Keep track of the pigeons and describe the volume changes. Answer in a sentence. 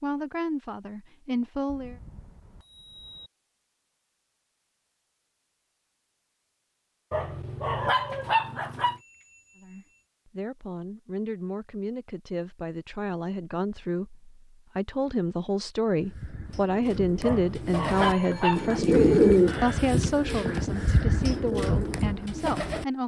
The loudness of the pigeons goes up, then down.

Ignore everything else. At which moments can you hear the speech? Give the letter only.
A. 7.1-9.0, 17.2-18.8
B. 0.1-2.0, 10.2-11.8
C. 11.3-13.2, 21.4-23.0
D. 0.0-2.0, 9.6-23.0
D.